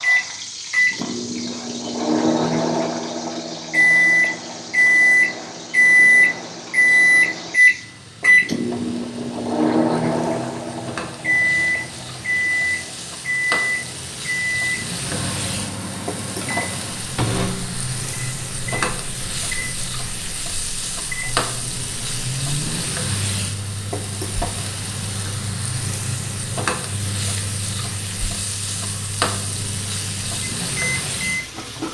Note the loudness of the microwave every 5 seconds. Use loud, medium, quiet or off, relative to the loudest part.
loud, loud, medium, quiet, quiet, quiet, quiet.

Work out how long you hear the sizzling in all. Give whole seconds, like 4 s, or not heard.
32 s.